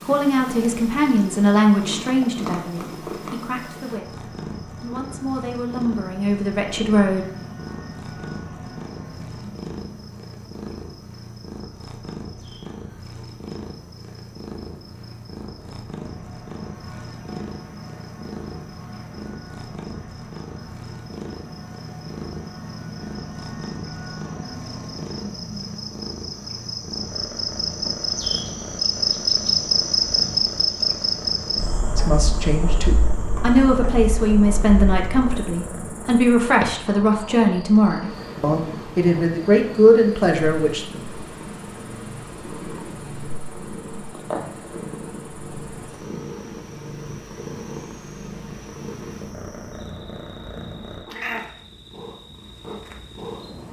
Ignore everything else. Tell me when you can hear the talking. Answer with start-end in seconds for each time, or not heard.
0.1-7.2, 31.9-40.8.